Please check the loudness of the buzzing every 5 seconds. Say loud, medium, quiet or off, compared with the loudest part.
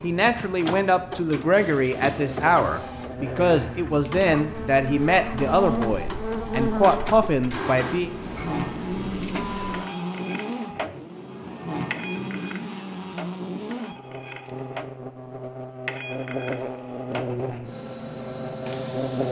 medium, loud, loud, loud.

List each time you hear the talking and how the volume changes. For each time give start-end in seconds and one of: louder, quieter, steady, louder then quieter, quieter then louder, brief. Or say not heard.
0.0-8.1 steady.